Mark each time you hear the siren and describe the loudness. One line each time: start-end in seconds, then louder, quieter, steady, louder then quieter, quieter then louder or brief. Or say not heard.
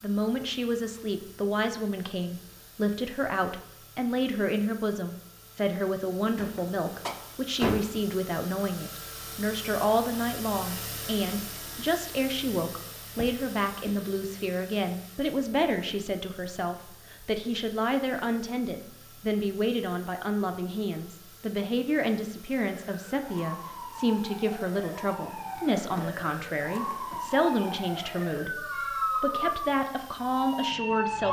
22.6-31.2 louder.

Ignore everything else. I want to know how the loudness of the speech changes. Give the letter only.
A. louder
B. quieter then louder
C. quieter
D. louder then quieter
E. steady
E.